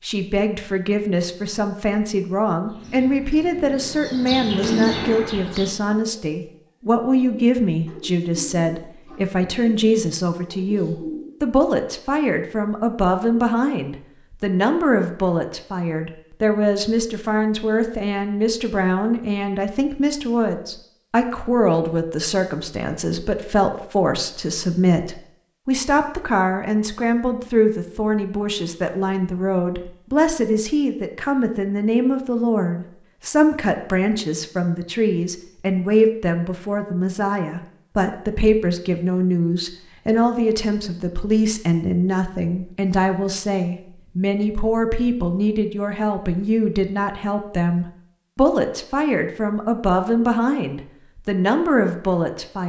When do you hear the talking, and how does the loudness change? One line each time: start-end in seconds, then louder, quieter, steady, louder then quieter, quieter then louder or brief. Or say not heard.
0.0-52.6 steady.